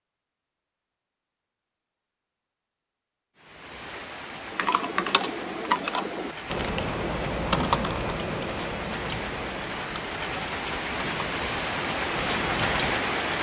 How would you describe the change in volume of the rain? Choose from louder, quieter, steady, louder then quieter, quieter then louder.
louder.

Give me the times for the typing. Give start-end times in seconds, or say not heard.
4.5-13.1.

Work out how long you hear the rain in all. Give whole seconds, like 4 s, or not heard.
10 s.